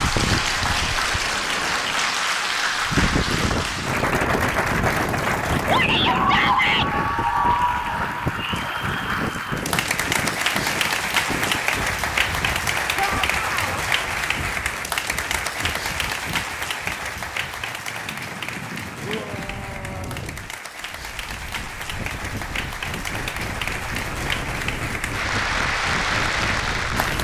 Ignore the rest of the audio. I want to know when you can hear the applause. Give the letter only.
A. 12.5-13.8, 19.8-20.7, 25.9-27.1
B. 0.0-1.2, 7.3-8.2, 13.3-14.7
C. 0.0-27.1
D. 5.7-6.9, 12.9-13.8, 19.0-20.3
C.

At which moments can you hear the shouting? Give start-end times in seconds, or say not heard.
5.7-6.9, 12.9-13.8, 19.0-20.3.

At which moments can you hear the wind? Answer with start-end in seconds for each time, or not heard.
0.0-27.1.